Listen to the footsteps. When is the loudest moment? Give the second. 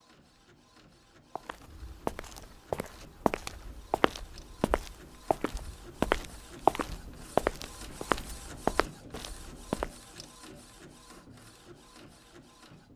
7 s.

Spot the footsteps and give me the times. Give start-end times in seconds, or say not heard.
1.4-9.9.